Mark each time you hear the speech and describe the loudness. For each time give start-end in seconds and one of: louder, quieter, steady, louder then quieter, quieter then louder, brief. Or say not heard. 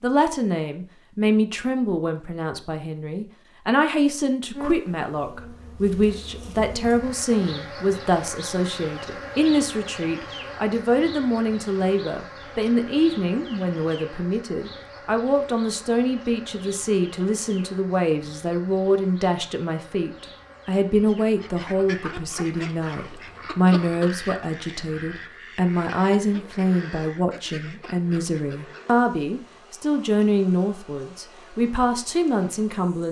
0.0-33.0 steady.